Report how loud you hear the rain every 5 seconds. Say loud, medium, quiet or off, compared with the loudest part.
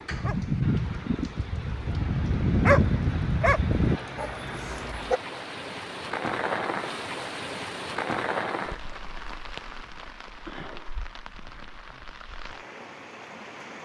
medium, loud, medium.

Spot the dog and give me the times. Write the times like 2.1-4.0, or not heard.
0.1-5.2.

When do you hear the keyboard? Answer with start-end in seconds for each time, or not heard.
not heard.